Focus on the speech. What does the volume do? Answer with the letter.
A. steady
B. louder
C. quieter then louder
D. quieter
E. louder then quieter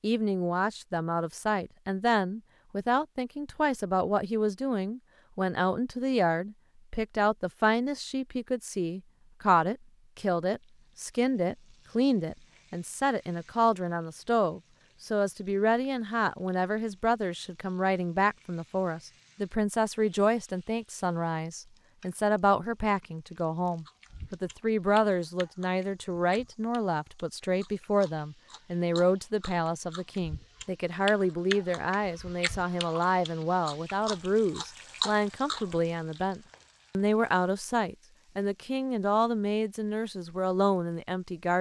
A.